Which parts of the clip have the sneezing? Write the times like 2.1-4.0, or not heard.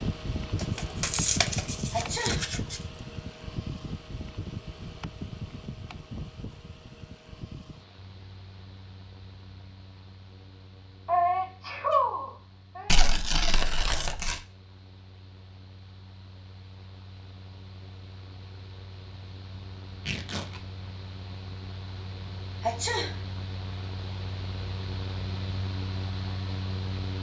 1.9-2.4, 11.1-13.1, 22.6-23.1.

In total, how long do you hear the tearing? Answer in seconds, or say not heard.
4 s.